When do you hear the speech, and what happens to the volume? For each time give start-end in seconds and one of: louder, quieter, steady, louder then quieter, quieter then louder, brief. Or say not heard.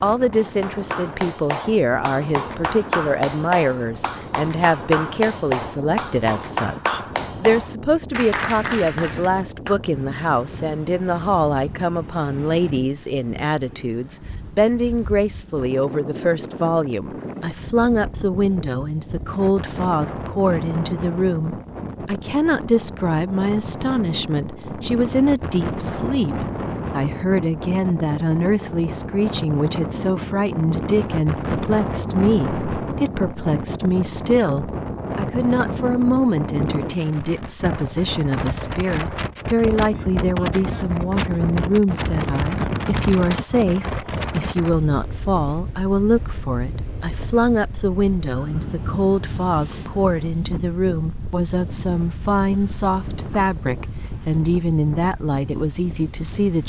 0.0-56.6 steady.